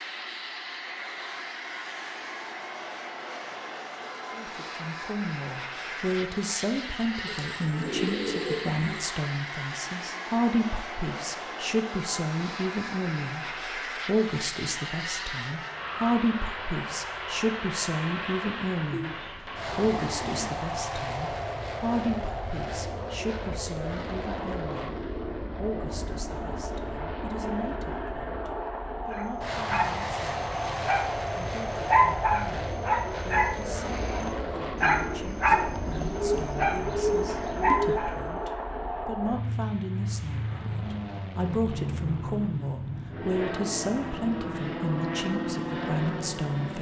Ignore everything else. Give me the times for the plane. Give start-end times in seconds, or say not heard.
0.0-46.7.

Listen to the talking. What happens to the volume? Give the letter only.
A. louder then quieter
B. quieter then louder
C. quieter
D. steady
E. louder
B.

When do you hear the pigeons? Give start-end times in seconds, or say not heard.
7.2-9.0, 18.9-20.6, 35.5-38.0.